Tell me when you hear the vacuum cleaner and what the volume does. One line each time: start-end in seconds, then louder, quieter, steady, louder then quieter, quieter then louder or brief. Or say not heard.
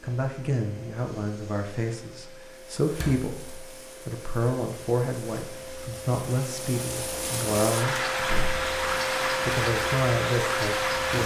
0.0-11.2 louder.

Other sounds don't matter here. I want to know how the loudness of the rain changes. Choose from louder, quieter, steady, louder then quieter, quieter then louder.
louder.